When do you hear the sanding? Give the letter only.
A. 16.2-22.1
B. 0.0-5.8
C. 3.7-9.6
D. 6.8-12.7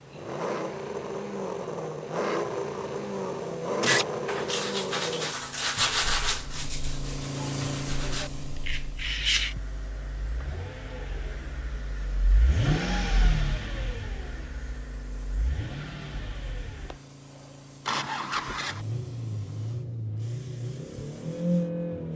C.